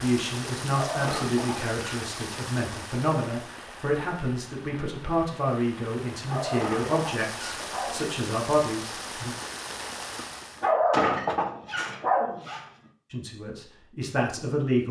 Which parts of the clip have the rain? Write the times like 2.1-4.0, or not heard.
0.0-10.7.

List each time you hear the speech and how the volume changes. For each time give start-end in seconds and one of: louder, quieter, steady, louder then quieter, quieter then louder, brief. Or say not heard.
0.0-9.3 steady
13.1-14.8 brief.